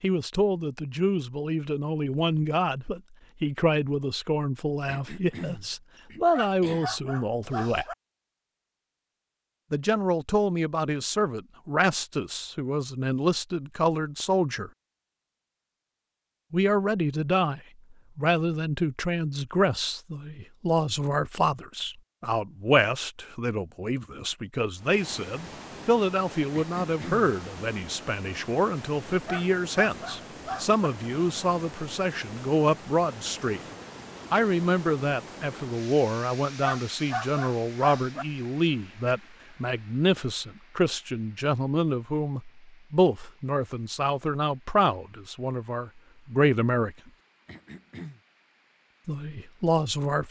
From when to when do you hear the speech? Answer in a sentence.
You can hear the speech from 0.0 to 8.0 s, from 9.7 to 14.7 s, from 16.5 to 33.6 s, from 34.3 to 47.0 s and from 49.0 to 50.2 s.